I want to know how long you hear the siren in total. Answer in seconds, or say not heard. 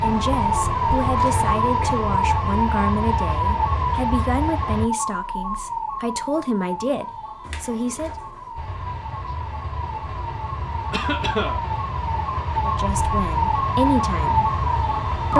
15 s.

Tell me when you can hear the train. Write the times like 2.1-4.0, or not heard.
0.0-4.9, 8.6-15.3.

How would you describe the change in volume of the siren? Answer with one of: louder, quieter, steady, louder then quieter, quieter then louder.
quieter then louder.